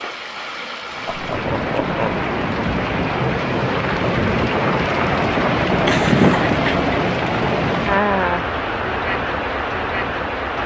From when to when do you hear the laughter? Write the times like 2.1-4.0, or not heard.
1.1-2.1, 5.8-6.8.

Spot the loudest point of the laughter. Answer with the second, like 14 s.
6 s.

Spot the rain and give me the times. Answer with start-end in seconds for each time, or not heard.
0.0-10.6.